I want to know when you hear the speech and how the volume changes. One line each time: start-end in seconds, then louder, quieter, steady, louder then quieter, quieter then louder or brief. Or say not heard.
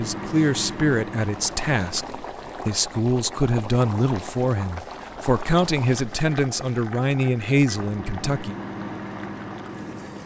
0.0-8.6 steady.